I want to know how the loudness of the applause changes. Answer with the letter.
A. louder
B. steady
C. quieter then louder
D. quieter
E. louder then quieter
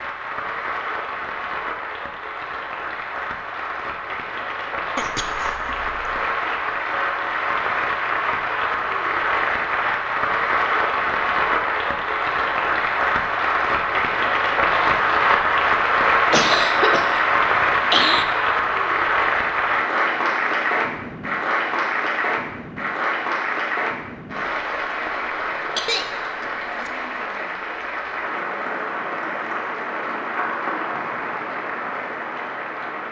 E.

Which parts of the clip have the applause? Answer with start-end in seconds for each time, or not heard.
0.0-33.0.